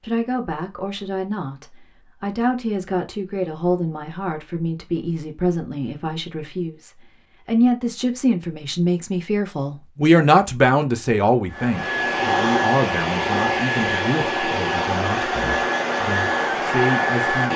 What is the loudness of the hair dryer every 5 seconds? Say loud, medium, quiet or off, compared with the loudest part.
off, off, loud, loud.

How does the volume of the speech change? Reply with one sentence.
The volume of the speech goes up, then down.